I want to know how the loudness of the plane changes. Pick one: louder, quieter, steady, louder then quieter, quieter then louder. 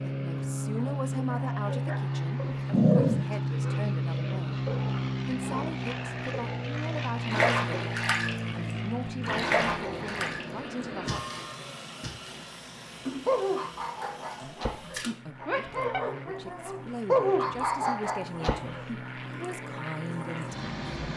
quieter then louder.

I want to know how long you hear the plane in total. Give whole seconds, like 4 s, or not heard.
21 s.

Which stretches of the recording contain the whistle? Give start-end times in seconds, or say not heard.
not heard.